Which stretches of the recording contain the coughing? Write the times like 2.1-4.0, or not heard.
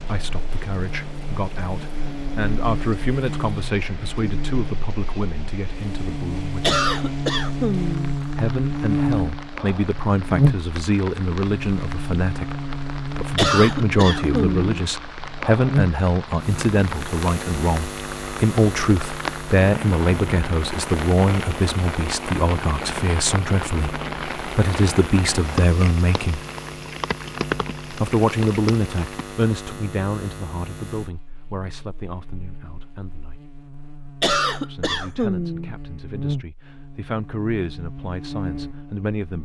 6.6-8.2, 13.3-14.8, 34.2-35.8.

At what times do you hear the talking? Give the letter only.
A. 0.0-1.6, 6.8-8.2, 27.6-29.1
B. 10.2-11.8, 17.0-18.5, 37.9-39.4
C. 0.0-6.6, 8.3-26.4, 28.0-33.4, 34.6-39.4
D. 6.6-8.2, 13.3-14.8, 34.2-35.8
C.